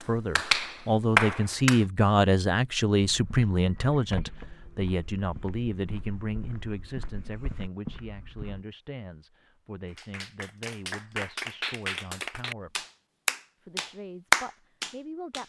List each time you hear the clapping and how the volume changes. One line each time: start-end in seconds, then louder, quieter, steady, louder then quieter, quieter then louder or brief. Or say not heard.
0.0-1.8 brief
9.9-15.4 louder.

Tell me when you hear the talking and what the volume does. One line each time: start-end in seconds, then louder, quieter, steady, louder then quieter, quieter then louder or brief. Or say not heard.
0.1-12.8 quieter
13.6-15.4 brief.